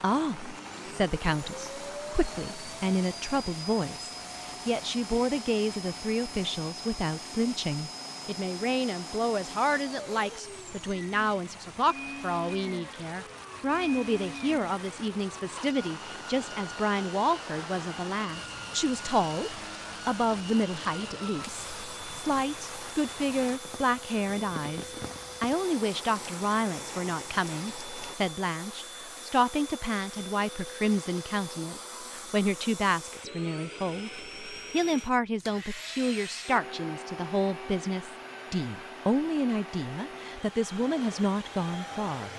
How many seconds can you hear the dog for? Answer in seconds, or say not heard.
not heard.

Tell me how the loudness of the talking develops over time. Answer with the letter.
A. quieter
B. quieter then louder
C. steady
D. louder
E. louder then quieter
C.